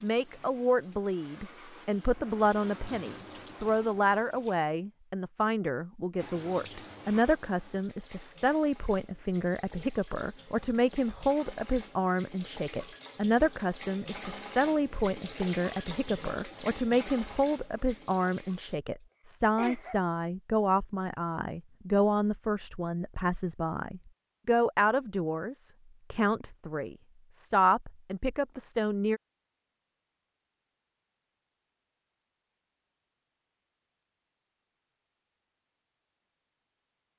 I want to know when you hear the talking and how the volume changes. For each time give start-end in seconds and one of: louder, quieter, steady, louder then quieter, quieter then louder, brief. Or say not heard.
0.0-29.2 steady.